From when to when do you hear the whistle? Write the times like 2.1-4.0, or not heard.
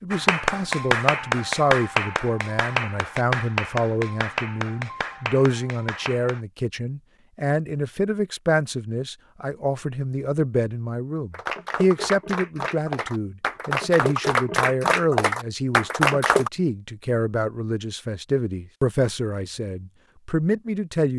not heard.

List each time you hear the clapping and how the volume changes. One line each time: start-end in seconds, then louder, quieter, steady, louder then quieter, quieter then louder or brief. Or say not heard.
0.1-6.4 quieter
11.3-16.5 louder.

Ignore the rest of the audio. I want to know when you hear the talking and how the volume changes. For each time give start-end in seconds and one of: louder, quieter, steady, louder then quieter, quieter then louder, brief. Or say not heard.
0.0-21.1 steady.